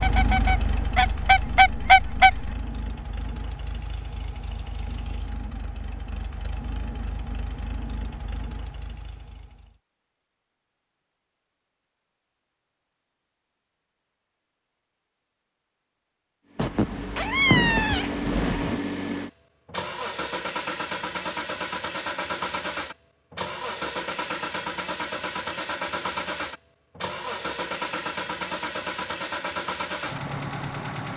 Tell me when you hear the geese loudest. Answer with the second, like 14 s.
2 s.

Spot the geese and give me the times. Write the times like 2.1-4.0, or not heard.
0.0-2.5.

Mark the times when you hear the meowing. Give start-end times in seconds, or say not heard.
16.6-18.8.